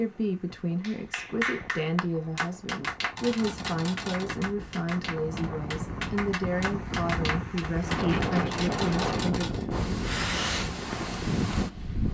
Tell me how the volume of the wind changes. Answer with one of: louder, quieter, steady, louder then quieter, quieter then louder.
louder.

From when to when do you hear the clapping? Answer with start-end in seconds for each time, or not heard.
0.8-8.4.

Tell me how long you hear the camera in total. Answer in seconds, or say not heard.
2 s.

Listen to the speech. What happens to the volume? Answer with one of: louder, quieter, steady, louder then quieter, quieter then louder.
steady.